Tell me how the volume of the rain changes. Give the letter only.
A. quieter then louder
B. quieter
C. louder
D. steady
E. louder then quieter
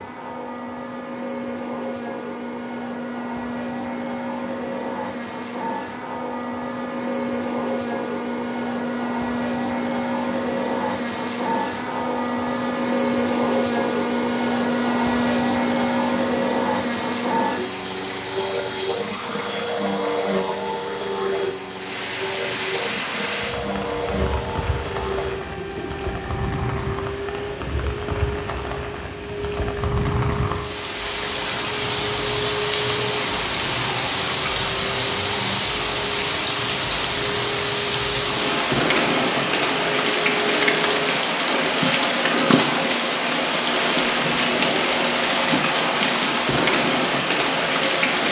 C.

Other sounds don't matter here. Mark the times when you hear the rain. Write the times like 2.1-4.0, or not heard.
21.7-48.2.